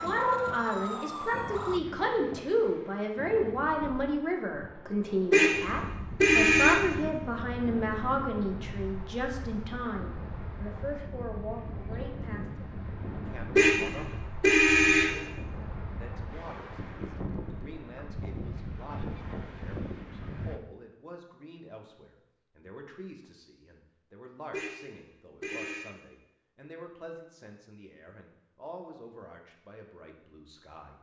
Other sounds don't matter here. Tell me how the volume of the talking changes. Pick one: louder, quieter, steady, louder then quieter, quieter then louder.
quieter.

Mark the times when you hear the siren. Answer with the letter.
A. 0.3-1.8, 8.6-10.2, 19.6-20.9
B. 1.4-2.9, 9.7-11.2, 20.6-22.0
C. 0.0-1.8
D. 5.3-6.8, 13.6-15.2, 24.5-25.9
C.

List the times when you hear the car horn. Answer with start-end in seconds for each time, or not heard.
5.3-6.8, 13.6-15.2, 24.5-25.9.